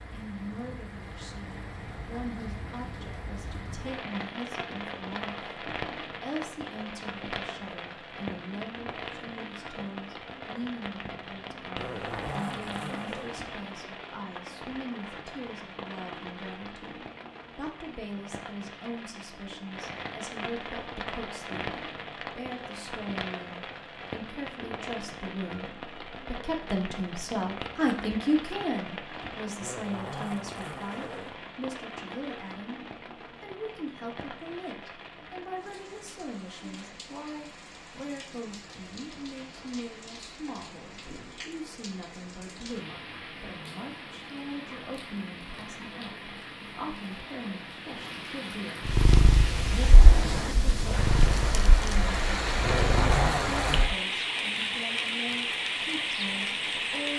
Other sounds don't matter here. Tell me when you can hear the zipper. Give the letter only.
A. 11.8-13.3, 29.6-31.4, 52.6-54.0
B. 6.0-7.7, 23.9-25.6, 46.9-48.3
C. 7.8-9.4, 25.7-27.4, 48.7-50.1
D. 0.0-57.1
A.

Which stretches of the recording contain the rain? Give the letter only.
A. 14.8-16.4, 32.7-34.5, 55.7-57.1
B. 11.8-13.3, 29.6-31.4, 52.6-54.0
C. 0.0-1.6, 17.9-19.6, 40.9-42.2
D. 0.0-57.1
D.